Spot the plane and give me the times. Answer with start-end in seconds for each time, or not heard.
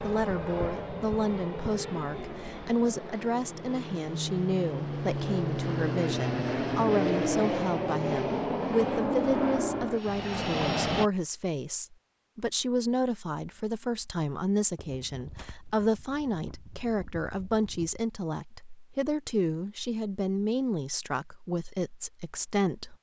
0.0-11.1.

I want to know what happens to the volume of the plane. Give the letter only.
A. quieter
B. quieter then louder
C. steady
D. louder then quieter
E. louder
E.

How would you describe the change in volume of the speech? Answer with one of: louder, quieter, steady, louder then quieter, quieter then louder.
steady.